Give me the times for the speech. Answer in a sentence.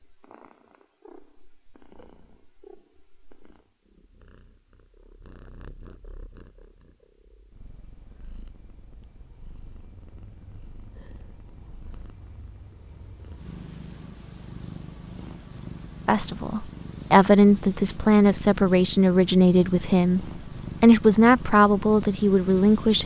You can hear the speech from 16.1 to 23.0 s.